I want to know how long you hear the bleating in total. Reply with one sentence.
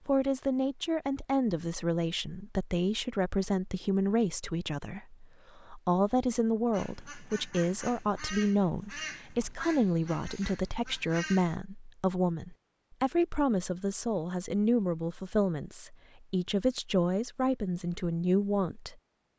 The bleating can't be heard in this clip.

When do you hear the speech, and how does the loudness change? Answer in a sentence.
You can hear the speech from 0.1 to 18.9 s, at a steady volume.